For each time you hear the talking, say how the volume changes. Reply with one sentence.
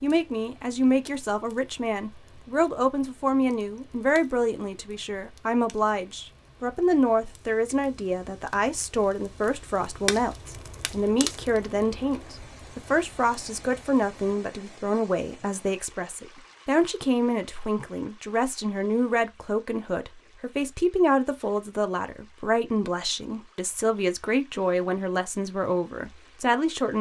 You can hear the talking from 0.0 to 26.9 s, at a steady volume.